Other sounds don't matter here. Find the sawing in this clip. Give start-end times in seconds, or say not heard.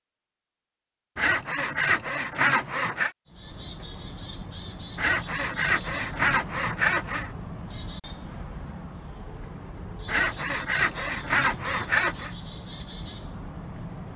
1.1-3.1, 5.0-7.3, 10.1-12.3.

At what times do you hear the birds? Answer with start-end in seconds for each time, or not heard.
3.2-14.1.